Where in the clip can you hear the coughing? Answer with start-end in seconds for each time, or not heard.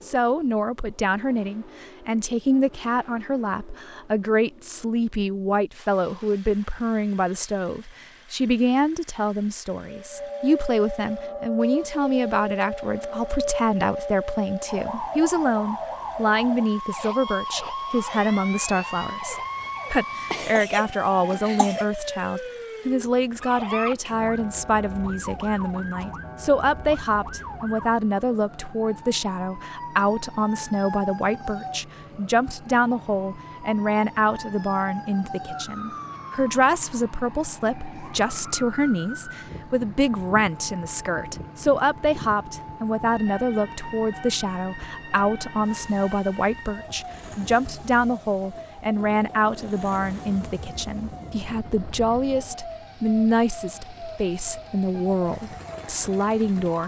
20.3-21.9.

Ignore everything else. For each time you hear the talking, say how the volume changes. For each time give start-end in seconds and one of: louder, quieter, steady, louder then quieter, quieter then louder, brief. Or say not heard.
0.0-56.8 steady.